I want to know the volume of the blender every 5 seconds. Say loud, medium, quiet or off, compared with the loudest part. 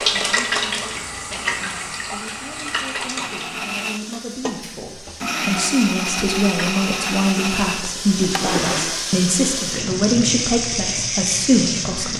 medium, loud, off.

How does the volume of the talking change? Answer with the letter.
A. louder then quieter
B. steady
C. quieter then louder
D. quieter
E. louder
E.